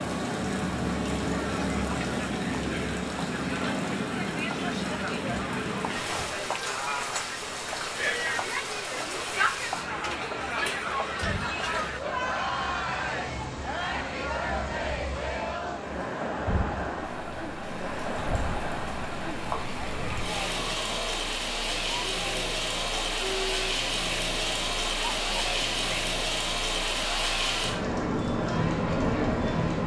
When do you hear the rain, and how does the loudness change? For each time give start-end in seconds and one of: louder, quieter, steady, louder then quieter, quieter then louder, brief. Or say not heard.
0.0-29.8 quieter then louder.